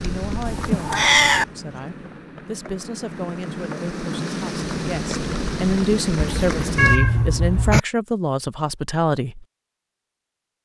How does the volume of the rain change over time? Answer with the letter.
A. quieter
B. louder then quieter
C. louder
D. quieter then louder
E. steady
D.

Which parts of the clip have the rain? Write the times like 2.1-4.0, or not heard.
0.0-7.0.